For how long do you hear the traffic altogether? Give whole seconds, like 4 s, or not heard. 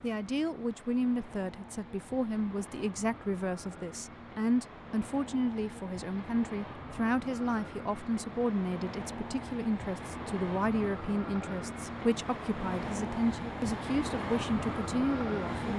16 s.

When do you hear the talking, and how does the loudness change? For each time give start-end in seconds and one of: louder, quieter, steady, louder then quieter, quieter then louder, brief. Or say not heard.
0.0-15.7 steady.